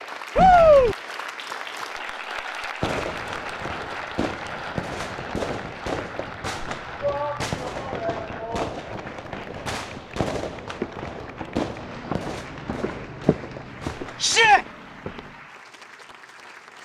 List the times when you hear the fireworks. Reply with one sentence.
The fireworks can be heard from 2.8 to 14.3 s.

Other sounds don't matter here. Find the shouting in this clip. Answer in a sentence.
You can hear the shouting from 0.3 to 0.9 s, from 7.0 to 8.7 s and from 14.2 to 14.7 s.